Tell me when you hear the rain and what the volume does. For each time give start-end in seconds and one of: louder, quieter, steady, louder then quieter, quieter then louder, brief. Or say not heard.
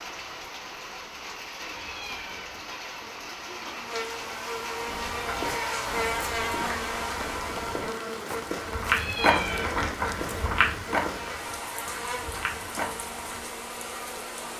0.0-14.5 steady.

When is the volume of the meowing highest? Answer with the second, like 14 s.
9 s.